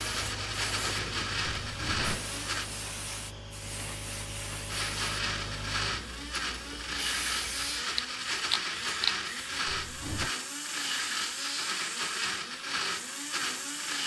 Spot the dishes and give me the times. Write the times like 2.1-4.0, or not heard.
not heard.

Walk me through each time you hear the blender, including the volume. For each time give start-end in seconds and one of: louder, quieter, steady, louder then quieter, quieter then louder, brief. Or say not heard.
0.0-2.7 brief
4.7-14.0 steady.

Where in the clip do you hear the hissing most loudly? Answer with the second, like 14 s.
9 s.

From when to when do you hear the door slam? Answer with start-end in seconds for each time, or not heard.
1.6-2.2, 9.7-10.3.